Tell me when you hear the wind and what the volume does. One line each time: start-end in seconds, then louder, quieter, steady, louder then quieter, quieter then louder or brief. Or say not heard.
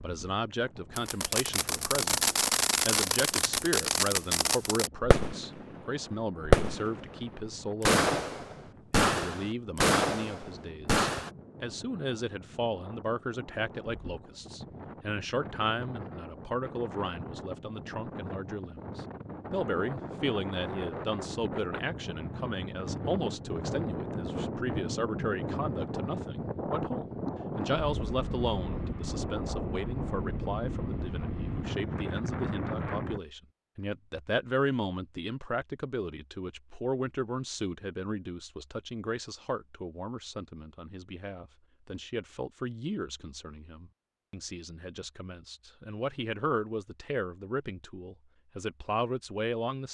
0.0-33.2 louder.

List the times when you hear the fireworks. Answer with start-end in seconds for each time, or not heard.
0.9-11.3.